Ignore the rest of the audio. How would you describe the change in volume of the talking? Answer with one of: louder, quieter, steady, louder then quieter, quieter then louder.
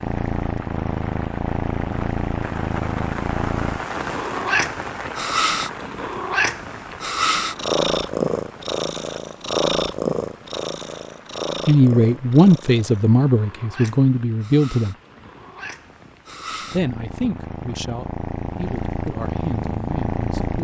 quieter.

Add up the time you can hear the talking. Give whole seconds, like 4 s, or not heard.
7 s.